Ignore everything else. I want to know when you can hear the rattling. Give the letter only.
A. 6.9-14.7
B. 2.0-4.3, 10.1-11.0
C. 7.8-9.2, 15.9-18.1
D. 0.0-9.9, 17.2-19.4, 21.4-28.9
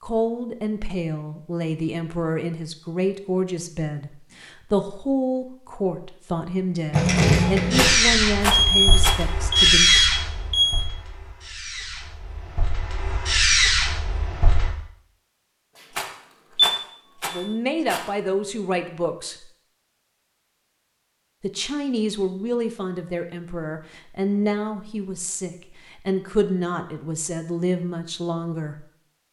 C.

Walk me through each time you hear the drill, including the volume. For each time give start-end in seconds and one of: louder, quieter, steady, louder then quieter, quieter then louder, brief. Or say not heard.
6.9-14.7 quieter then louder.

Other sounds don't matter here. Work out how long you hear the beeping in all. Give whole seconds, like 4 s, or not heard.
3 s.